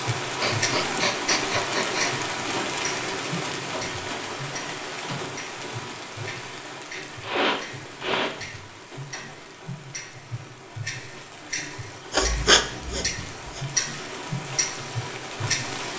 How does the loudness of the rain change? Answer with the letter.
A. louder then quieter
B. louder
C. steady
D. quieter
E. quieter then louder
E.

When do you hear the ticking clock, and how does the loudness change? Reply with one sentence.
You can hear the ticking clock from 0.0 to 15.9 s, getting quieter then louder.